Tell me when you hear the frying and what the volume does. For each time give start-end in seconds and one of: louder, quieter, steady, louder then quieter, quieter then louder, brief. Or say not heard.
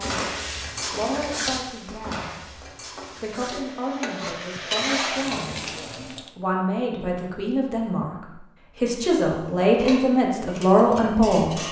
0.0-6.3 quieter then louder.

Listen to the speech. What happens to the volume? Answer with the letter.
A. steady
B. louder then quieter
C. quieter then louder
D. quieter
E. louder
E.